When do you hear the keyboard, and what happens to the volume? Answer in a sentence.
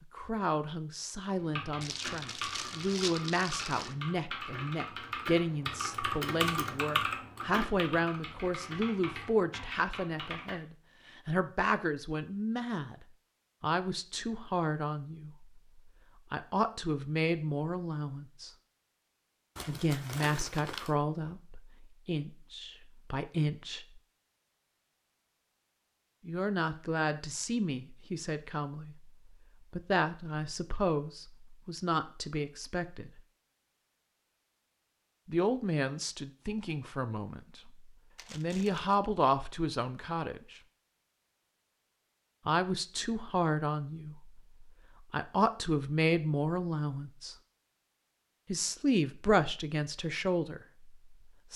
The keyboard can be heard from 1.4 to 10.6 s, getting louder then quieter.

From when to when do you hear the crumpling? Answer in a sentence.
The crumpling can be heard from 1.8 to 4.0 s, from 19.6 to 20.9 s and from 38.1 to 38.9 s.